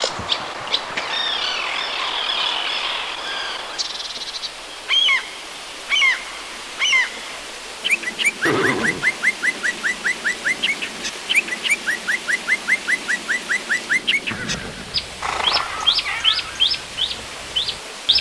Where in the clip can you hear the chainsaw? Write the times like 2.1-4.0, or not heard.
not heard.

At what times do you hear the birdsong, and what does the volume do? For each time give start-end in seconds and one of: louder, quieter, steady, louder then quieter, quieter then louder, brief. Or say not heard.
0.0-18.1 steady.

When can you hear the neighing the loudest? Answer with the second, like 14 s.
9 s.